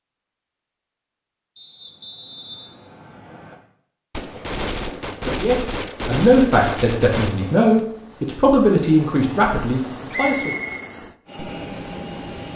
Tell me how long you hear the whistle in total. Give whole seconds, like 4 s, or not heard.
3 s.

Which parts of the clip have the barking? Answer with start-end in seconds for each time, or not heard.
not heard.